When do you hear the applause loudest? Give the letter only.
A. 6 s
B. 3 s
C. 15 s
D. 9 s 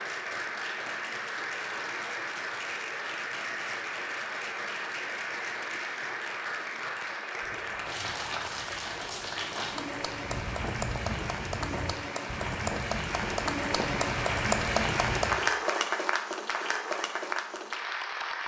C.